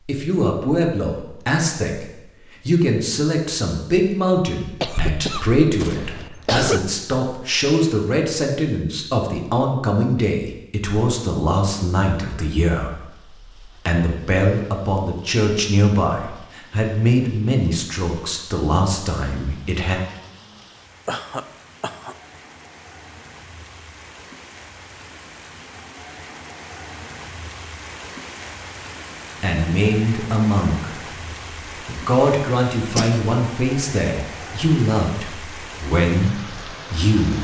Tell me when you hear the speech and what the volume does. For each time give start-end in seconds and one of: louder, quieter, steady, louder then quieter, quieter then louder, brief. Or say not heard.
0.0-20.0 steady
29.4-31.0 brief
31.9-37.3 quieter then louder.